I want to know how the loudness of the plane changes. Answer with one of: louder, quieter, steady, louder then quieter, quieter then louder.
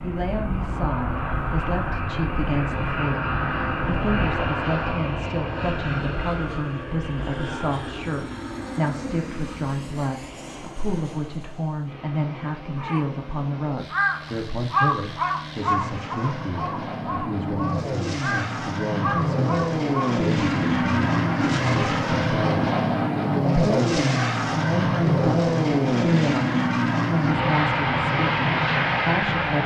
quieter then louder.